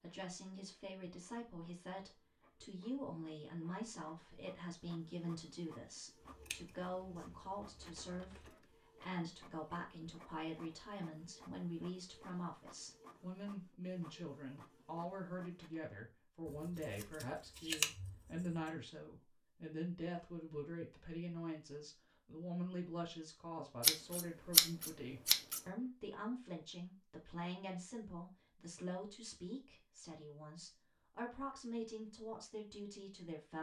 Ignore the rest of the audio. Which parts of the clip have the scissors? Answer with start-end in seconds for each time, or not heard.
6.2-8.5, 16.4-18.6, 23.8-25.6.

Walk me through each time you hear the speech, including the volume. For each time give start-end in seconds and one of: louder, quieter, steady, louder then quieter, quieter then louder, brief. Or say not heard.
0.0-33.5 steady.